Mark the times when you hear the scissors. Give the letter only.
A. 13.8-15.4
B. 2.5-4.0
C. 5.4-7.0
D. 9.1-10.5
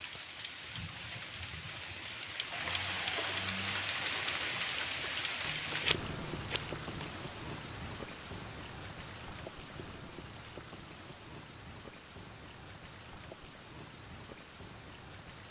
C.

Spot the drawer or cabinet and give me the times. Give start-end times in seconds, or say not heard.
2.5-4.0.